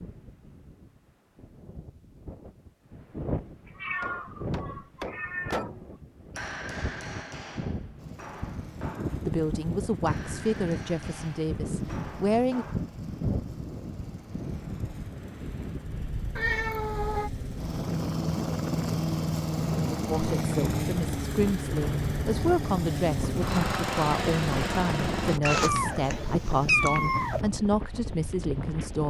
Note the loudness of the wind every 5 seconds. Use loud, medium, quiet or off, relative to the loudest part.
medium, loud, loud, loud, loud, loud.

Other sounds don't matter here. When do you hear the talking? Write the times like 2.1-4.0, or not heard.
9.2-12.7, 20.1-29.0.